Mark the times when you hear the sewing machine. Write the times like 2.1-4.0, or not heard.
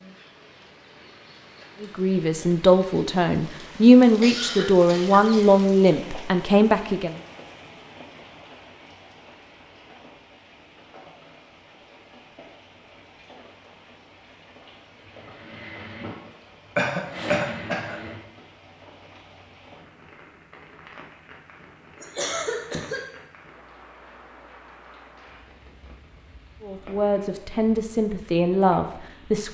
14.8-18.2.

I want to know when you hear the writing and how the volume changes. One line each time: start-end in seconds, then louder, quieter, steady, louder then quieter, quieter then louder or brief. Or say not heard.
not heard.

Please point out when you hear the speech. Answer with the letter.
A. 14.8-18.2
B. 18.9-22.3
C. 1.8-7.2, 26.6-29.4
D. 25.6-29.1
C.